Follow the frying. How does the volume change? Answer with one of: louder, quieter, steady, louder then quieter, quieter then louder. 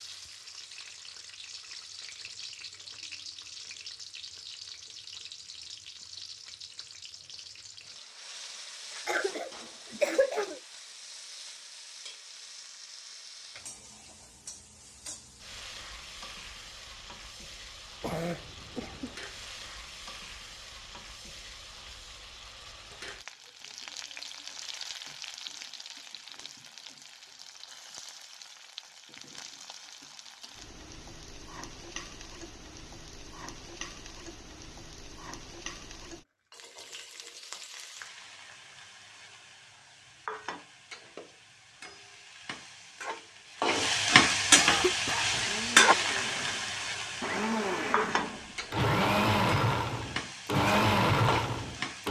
louder.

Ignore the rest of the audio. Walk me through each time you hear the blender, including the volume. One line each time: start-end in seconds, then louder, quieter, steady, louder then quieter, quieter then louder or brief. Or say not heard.
45.1-52.0 louder.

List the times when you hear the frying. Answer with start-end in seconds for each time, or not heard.
0.0-52.0.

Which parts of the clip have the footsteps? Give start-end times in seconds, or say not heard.
not heard.